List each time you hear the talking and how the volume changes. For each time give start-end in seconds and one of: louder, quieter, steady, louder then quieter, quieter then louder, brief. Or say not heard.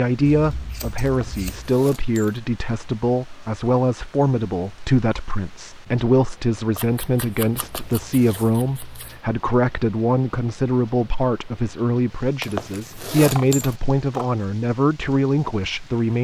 0.0-16.1 steady.